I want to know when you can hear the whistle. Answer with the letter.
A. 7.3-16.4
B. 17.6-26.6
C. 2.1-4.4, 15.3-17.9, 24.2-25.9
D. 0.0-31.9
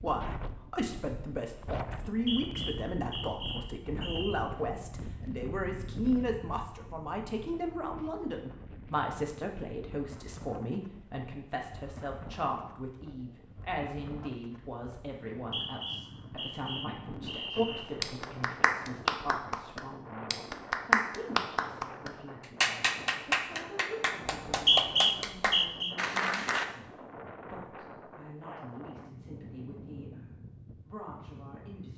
C.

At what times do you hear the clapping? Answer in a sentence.
The clapping can be heard from 17.6 to 26.6 s.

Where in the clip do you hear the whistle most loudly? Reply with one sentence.
The loudest moment of the whistle is at 25 seconds.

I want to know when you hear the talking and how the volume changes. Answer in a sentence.
You can hear the talking from 0.0 to 31.9 s, getting quieter.